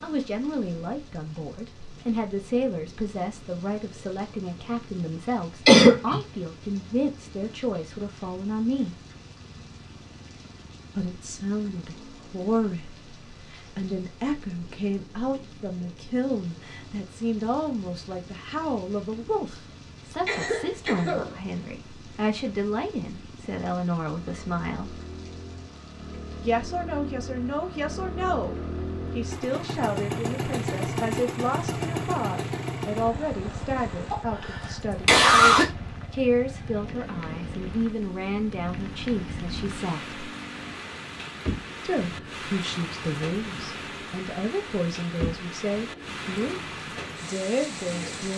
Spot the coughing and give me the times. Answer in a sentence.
The coughing can be heard from 5.7 to 6.2 s, from 20.2 to 21.4 s and from 34.1 to 35.6 s.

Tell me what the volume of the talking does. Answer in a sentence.
The loudness of the talking stays about the same.